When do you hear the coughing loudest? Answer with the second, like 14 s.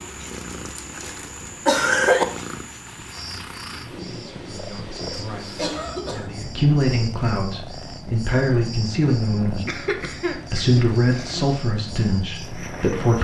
2 s.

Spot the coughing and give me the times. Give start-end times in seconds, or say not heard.
0.5-2.2, 5.5-6.4, 9.4-11.4.